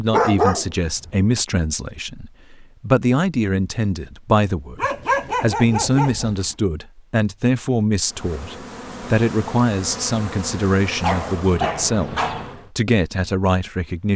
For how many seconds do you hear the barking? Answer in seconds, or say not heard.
4 s.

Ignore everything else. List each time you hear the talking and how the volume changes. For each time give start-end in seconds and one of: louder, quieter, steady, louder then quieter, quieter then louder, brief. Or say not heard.
0.0-14.1 steady.